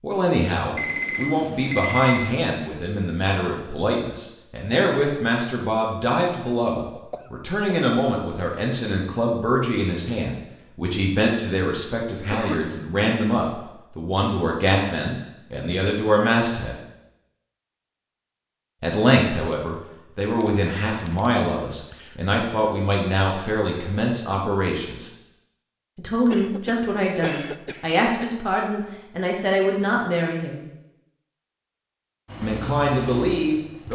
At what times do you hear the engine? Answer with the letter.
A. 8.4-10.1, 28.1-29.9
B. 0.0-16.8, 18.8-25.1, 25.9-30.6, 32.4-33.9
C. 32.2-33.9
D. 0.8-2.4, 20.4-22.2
C.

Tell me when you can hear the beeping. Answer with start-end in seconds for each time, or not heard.
0.8-2.4, 20.4-22.2.